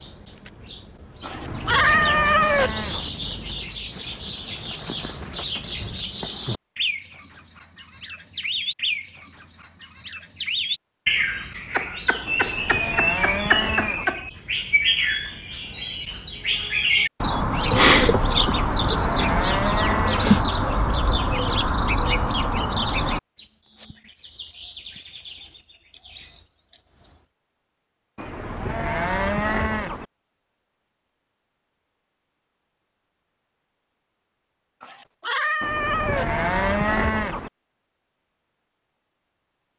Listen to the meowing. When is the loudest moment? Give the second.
2 s.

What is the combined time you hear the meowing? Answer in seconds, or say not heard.
3 s.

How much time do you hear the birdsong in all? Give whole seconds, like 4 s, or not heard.
27 s.